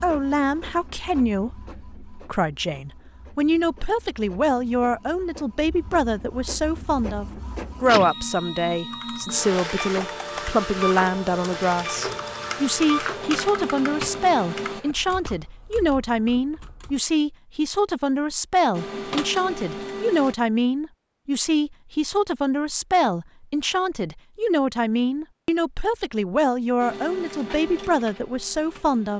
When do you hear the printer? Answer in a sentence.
You can hear the printer from 0.0 to 14.8 s, from 18.7 to 20.4 s and from 26.8 to 29.1 s.